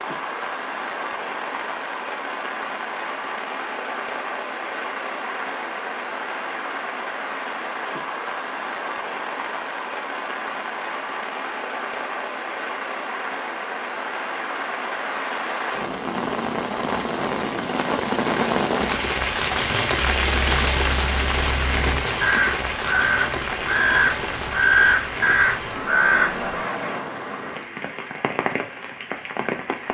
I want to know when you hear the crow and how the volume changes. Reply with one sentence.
The crow can be heard from 19.8 to 26.4 s, getting louder.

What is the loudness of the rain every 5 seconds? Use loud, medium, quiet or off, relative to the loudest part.
medium, medium, medium, loud, loud, medium.